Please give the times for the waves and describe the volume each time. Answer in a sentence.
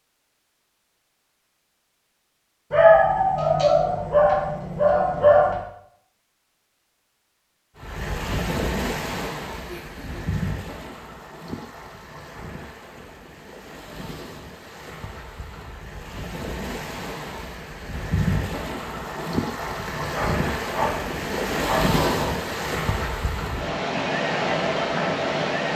You can hear the waves from 7.8 to 25.7 s, getting quieter then louder.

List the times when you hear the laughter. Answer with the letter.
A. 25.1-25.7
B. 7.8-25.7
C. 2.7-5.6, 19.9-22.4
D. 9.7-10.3
D.